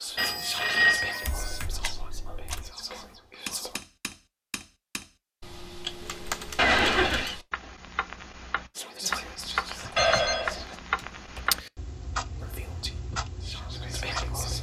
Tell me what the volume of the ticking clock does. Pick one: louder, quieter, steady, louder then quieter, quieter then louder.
louder then quieter.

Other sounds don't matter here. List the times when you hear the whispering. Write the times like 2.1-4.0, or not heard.
0.0-3.8, 8.8-10.8, 12.4-14.5.